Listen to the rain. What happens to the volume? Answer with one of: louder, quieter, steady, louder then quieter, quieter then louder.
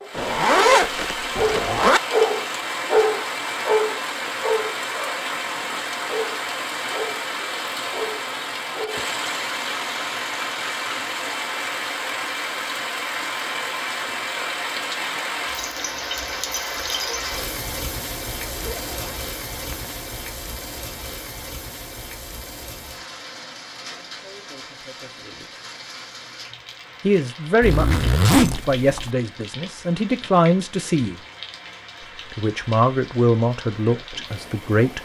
quieter.